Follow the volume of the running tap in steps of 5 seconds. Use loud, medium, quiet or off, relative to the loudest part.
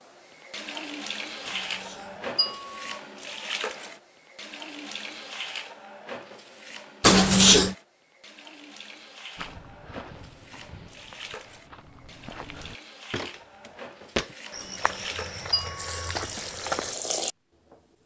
loud, medium, medium, loud.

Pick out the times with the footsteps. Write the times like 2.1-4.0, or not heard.
9.3-16.9.